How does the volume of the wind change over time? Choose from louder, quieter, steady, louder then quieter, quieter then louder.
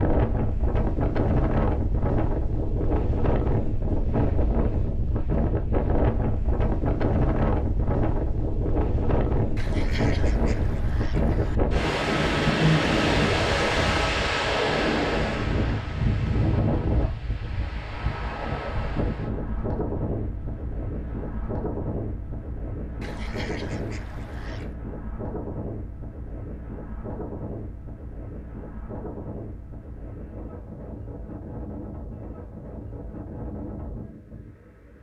quieter.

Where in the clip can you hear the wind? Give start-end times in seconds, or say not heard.
0.0-34.9.